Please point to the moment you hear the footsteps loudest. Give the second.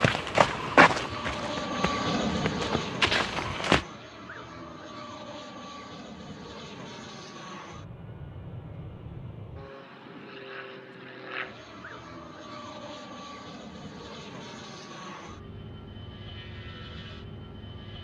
1 s.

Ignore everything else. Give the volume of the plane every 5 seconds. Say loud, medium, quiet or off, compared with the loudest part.
loud, medium, medium, medium.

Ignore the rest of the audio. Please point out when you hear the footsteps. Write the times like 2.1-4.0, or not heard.
0.0-3.9.